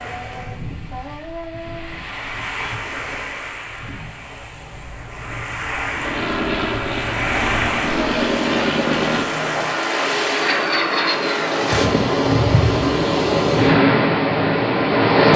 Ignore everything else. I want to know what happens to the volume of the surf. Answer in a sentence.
The loudness of the surf goes up.